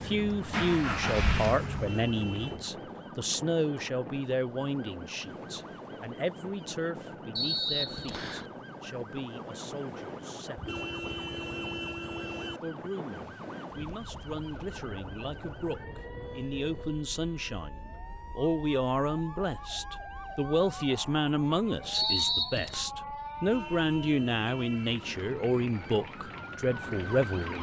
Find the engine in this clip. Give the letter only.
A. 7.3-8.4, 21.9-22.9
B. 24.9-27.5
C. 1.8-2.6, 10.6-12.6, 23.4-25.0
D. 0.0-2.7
D.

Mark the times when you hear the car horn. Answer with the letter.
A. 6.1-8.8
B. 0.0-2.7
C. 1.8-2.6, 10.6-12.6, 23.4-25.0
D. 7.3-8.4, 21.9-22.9
C.